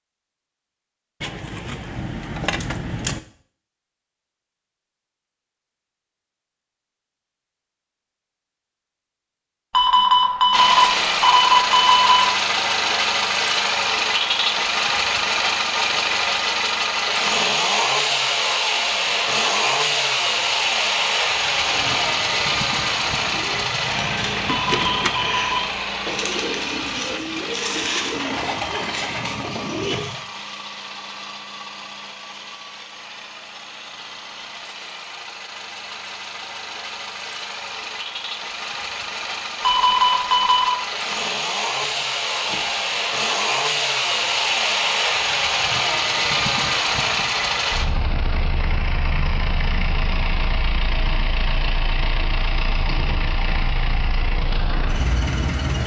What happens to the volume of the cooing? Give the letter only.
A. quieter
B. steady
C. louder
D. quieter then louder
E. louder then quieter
C.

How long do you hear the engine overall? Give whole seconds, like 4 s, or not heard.
45 s.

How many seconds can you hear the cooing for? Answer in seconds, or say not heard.
9 s.